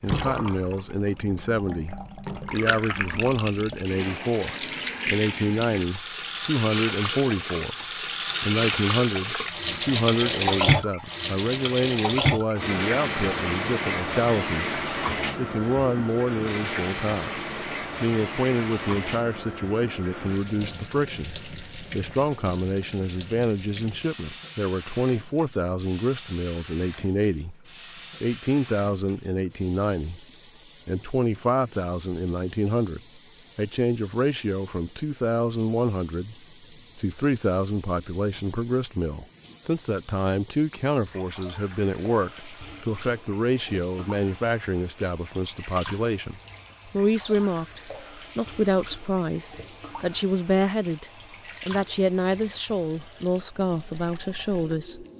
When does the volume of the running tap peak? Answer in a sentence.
The loudest moment of the running tap is at 10 seconds.